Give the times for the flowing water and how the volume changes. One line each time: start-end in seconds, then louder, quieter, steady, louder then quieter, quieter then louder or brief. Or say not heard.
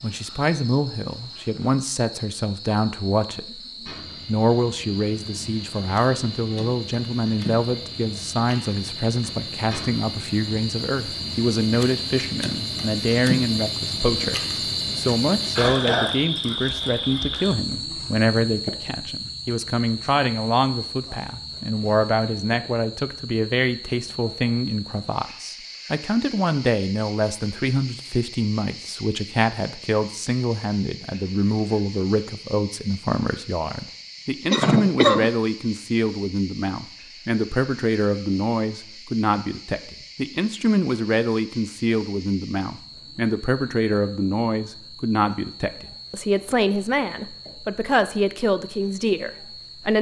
not heard.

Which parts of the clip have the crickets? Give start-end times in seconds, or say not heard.
0.0-49.9.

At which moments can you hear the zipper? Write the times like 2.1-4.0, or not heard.
not heard.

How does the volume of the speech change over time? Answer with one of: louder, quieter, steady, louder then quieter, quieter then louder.
steady.